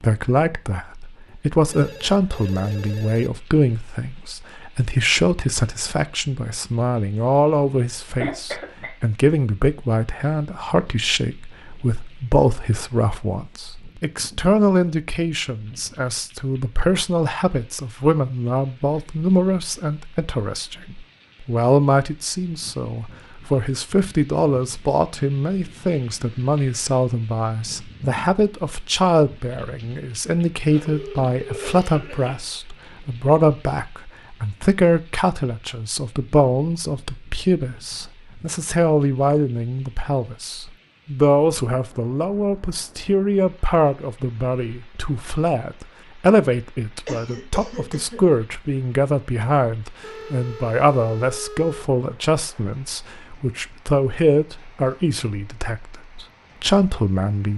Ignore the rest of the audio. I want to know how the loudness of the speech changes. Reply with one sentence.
The loudness of the speech stays about the same.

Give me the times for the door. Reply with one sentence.
You can't hear the door here.